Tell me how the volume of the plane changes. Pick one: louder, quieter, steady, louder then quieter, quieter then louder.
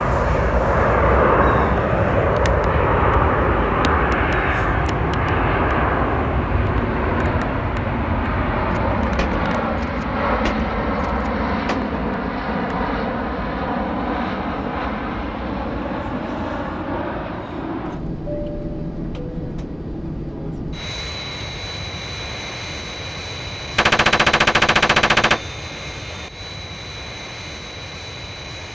quieter.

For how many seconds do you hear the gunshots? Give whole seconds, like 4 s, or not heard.
5 s.